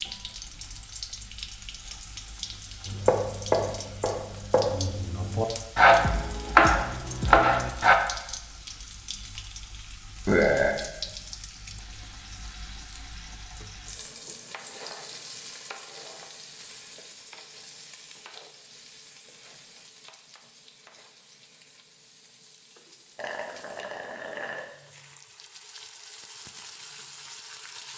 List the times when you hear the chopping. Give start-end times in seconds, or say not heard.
2.9-8.0.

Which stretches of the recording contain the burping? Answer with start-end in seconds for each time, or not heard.
10.2-10.8, 23.1-24.6.